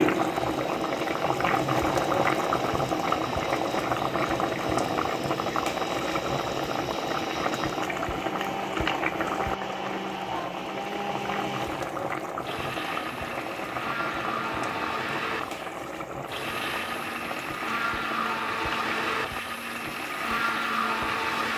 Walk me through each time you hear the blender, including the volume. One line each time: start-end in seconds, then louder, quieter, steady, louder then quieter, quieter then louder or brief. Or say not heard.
0.1-21.5 louder.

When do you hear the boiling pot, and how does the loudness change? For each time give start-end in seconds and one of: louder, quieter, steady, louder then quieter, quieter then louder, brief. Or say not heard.
0.0-21.5 quieter.